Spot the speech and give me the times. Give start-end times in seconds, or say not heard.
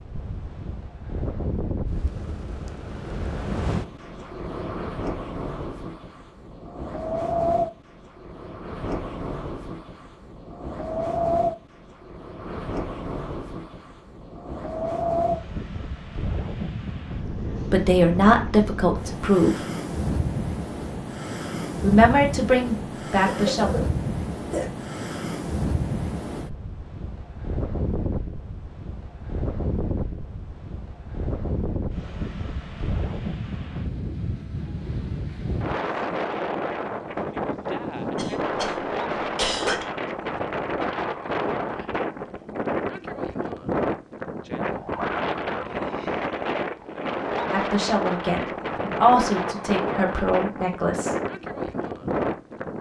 17.6-19.6, 21.8-23.7, 47.5-51.1.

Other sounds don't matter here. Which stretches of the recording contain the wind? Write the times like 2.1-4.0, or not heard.
0.0-52.7.